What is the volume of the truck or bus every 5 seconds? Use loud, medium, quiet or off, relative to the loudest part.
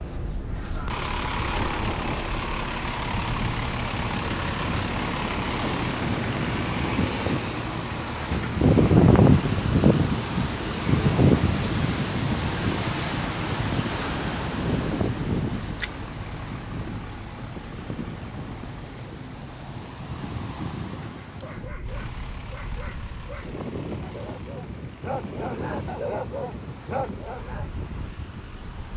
loud, loud, loud, medium, quiet, quiet.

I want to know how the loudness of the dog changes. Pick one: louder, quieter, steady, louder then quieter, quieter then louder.
louder.